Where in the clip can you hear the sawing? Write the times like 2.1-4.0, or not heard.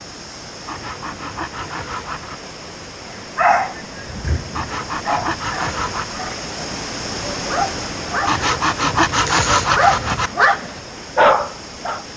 0.7-2.4, 4.5-6.2, 8.2-10.3.